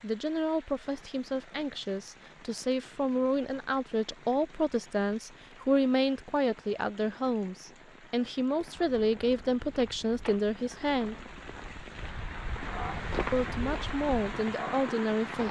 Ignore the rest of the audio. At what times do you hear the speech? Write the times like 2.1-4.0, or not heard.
0.0-11.2, 13.3-15.4.